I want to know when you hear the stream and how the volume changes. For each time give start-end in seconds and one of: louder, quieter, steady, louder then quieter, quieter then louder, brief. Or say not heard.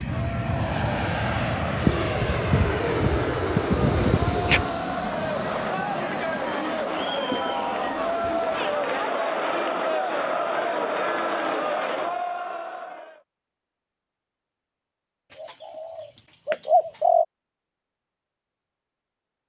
not heard.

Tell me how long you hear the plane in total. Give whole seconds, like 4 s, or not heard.
9 s.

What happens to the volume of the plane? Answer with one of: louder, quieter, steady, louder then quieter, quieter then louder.
quieter.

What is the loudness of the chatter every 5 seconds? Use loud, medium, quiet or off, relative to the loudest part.
medium, loud, loud, off.